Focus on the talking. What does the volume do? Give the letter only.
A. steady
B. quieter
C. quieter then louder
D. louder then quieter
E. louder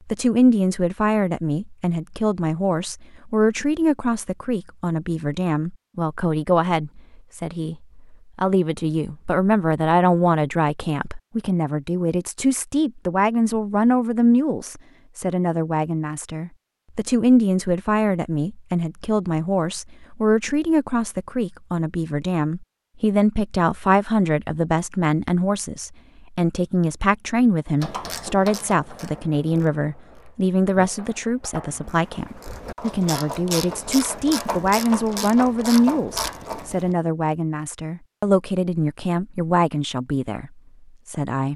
A.